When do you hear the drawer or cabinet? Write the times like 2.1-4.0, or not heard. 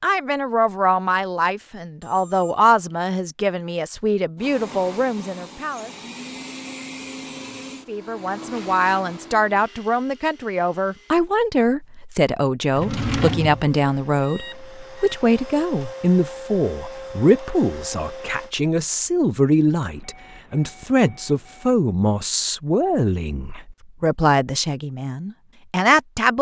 12.8-13.7.